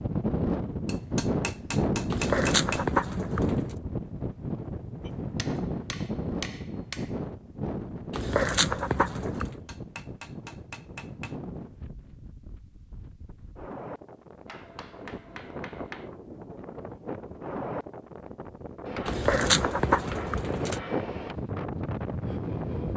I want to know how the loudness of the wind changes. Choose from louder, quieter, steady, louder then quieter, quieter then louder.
quieter then louder.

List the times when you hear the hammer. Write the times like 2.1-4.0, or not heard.
0.8-2.9, 5.0-7.1, 9.4-11.3, 14.4-16.1, 18.9-21.4.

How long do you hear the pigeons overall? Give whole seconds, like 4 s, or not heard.
5 s.